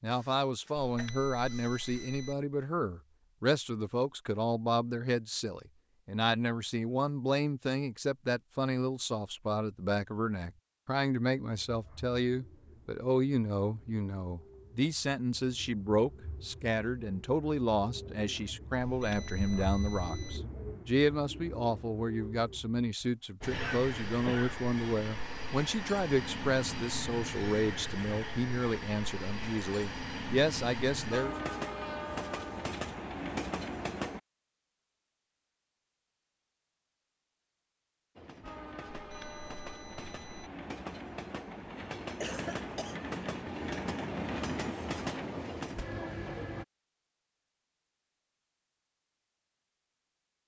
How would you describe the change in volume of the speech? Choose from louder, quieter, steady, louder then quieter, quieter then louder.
steady.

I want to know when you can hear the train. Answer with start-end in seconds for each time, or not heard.
23.4-34.2, 38.1-46.6.